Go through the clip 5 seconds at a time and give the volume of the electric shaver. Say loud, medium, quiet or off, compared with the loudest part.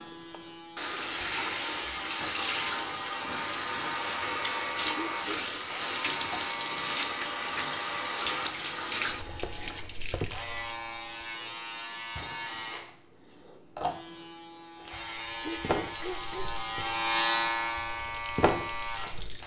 medium, medium, medium, loud.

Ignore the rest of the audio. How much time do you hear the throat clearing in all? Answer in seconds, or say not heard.
2 s.